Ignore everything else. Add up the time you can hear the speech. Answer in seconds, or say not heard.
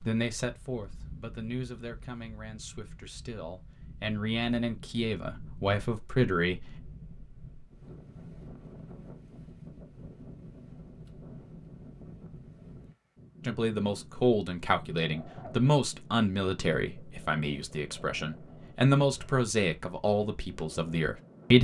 15 s.